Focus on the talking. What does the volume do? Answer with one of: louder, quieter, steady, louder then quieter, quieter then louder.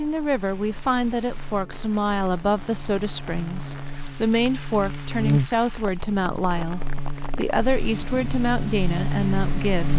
steady.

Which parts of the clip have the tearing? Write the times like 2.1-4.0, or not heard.
not heard.